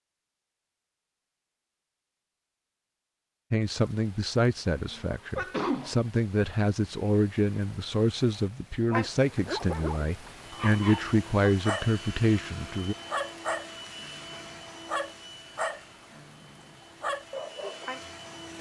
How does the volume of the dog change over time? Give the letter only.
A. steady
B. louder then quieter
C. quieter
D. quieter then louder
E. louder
A.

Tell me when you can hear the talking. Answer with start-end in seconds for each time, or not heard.
3.5-12.9.